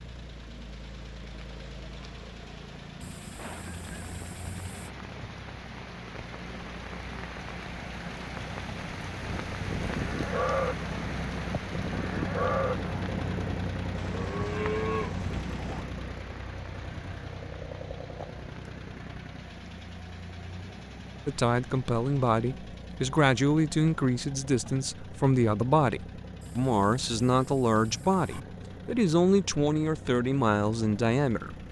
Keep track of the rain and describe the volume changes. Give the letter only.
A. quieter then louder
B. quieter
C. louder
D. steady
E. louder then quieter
E.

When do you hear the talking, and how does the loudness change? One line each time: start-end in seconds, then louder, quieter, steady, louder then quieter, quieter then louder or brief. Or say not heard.
21.2-31.6 steady.